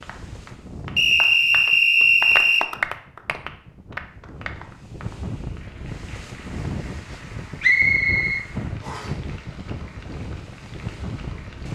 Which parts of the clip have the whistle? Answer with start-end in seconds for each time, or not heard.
0.9-2.6, 7.6-9.1.